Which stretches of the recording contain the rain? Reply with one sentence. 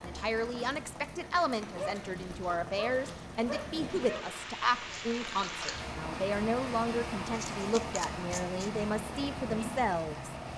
You can hear the rain from 0.0 to 10.5 s.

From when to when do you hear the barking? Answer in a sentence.
You can hear the barking from 1.8 to 4.3 s.